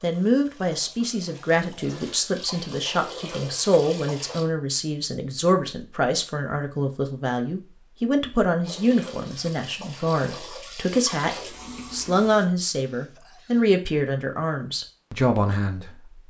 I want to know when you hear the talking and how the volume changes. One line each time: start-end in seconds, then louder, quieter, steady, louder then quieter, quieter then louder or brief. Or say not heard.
0.0-16.2 steady.